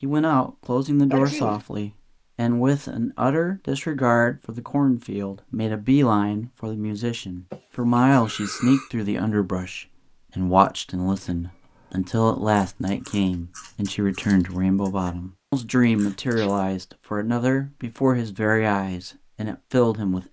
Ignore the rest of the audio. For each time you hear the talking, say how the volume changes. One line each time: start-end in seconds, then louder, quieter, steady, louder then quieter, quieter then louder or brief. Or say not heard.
0.0-20.2 steady.